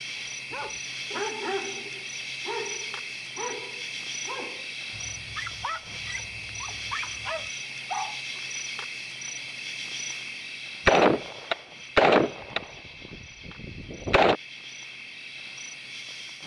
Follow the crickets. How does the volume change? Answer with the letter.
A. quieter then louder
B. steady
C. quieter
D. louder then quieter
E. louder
C.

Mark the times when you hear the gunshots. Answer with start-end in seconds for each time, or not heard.
10.8-14.3.